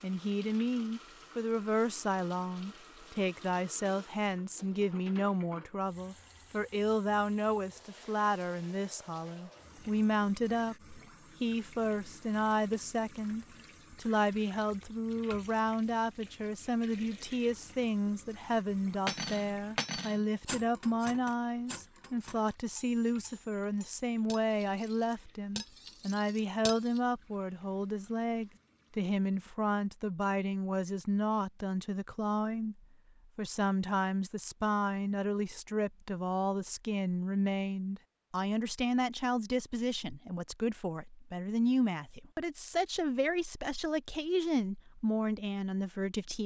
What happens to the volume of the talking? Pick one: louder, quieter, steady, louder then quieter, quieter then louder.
steady.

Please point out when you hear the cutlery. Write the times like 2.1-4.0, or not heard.
19.1-27.0.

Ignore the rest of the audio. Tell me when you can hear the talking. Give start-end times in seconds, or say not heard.
0.0-46.4.